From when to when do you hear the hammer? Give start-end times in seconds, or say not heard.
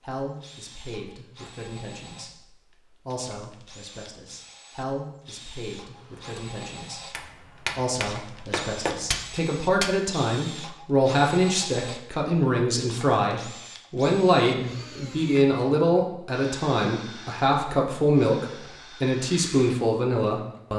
6.0-9.9.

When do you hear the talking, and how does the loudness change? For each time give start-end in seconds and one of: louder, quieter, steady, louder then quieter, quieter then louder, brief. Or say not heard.
0.0-20.7 louder.